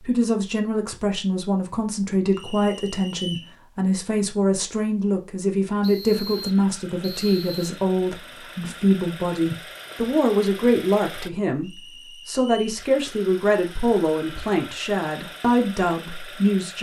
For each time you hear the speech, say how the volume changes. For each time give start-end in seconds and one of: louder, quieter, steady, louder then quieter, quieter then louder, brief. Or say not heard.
0.0-16.7 steady.